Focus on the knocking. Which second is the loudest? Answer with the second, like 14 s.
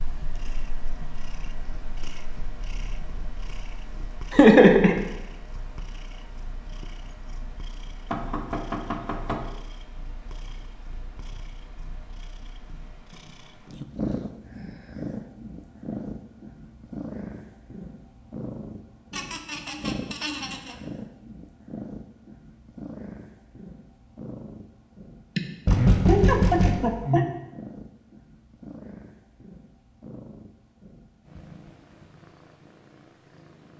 26 s.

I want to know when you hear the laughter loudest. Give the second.
5 s.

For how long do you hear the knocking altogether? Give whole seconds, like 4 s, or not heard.
3 s.